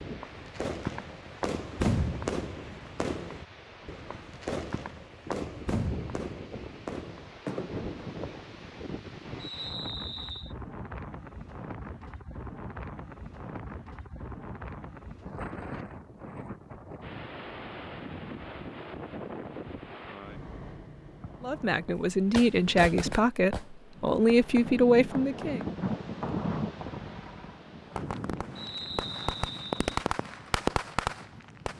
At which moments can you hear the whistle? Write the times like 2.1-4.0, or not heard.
9.3-10.6, 28.6-29.9.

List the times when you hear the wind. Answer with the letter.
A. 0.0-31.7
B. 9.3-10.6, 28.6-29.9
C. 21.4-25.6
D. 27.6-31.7
A.